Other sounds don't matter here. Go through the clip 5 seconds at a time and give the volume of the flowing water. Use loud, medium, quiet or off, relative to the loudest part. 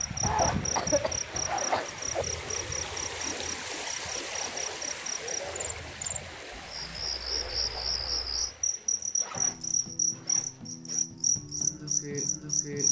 loud, medium, off.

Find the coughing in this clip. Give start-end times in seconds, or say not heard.
0.6-1.9.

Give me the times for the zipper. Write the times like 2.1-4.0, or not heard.
0.2-2.2, 4.5-6.0, 8.8-11.1.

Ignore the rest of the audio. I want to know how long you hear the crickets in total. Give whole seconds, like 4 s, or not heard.
13 s.